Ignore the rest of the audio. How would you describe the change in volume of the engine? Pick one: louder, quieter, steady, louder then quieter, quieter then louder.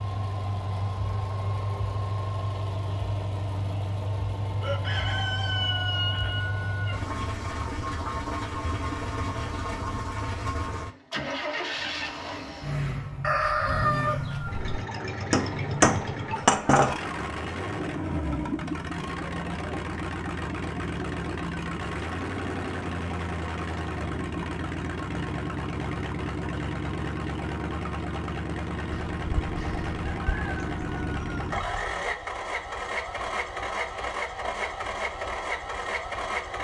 steady.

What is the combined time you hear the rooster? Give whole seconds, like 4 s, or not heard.
7 s.